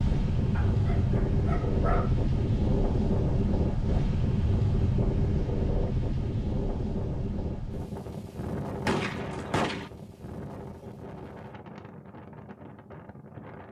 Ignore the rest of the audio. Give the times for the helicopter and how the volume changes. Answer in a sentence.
You can't hear the helicopter here.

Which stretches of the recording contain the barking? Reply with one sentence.
The barking can be heard from 0.5 to 2.1 s.